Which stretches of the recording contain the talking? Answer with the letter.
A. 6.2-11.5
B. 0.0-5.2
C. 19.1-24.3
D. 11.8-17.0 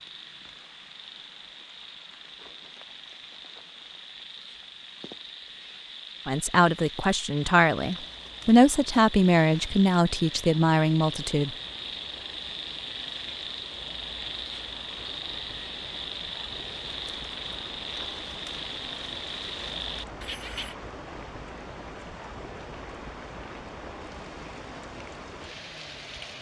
A.